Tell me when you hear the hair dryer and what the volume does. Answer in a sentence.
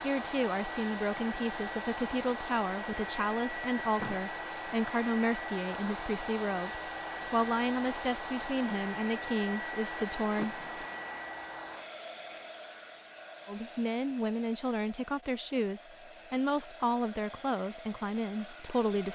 The hair dryer can be heard from 0.0 to 19.1 s, getting quieter.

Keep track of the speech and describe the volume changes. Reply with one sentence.
The volume of the speech stays about the same.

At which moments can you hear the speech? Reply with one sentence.
The speech can be heard from 0.0 to 10.6 s and from 13.4 to 19.1 s.